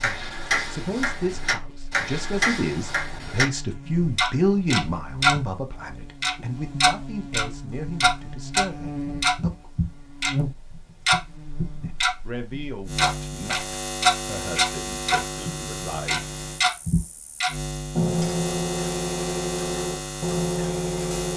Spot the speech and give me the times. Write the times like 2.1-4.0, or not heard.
0.0-9.7, 11.8-16.7.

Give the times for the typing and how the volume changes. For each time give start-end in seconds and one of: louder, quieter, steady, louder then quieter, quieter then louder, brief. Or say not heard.
not heard.